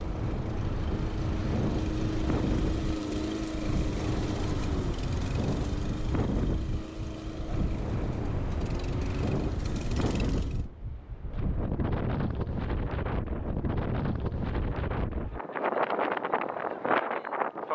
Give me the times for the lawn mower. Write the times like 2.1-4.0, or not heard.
0.0-10.7.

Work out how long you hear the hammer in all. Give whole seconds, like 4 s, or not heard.
not heard.